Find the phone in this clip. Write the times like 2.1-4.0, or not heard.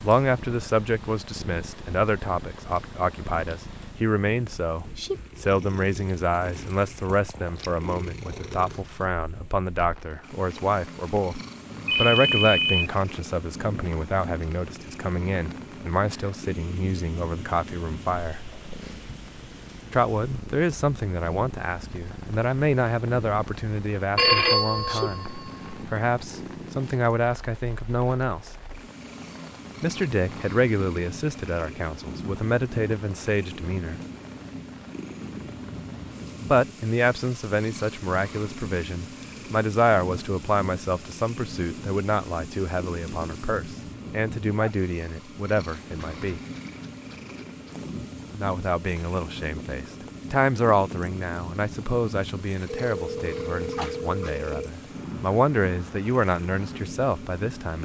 11.8-12.9, 24.1-25.8, 52.9-54.7.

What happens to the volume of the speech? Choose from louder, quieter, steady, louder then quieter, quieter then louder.
steady.